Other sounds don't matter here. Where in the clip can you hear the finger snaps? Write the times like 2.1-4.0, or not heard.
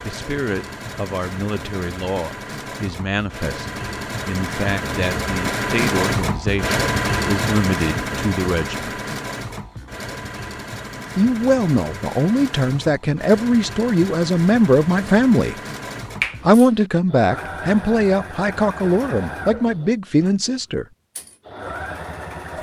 16.2-16.9.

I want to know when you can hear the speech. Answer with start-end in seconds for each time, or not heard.
0.0-8.9, 11.2-15.6, 16.4-20.9.